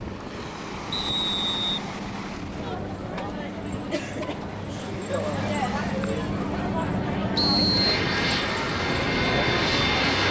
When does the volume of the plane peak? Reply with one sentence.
The volume of the plane peaks at 10 seconds.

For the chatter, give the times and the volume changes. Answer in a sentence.
The chatter can be heard from 2.5 to 10.2 s, at a steady volume.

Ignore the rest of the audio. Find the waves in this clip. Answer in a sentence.
The waves can be heard from 0.0 to 10.2 s.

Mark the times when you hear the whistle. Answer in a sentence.
The whistle can be heard from 0.9 to 1.8 s and from 7.3 to 8.0 s.